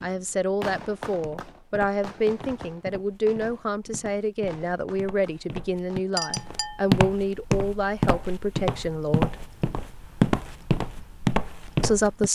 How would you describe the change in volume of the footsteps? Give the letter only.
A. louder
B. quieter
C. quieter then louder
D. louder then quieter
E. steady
A.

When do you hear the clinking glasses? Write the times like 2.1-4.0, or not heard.
6.2-6.8.